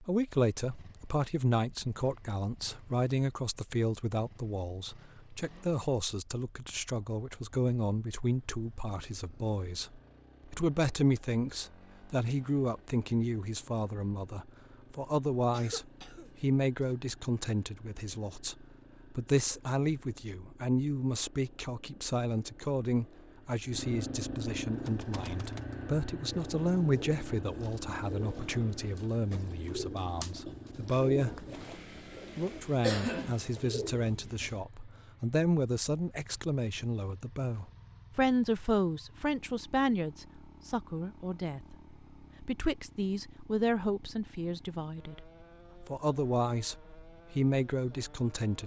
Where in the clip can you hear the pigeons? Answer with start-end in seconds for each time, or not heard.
24.6-34.6.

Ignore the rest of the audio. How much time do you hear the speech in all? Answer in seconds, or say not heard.
46 s.